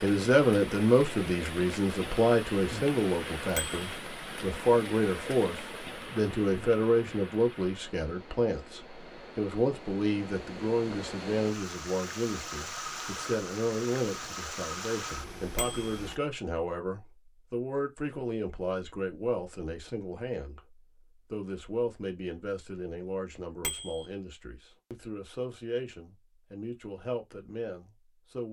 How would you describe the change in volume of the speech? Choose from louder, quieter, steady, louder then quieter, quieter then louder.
quieter.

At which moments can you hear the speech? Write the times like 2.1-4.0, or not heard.
0.0-28.4.